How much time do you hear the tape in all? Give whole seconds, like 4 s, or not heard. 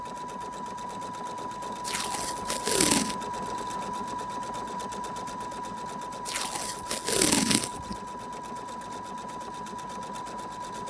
3 s.